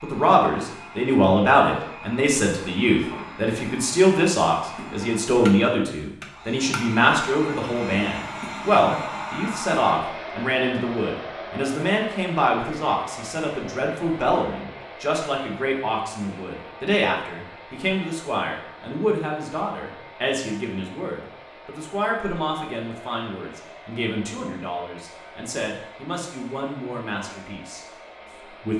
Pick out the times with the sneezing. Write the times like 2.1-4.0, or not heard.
not heard.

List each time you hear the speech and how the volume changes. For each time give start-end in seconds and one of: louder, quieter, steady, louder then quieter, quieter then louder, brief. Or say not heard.
0.0-28.7 quieter.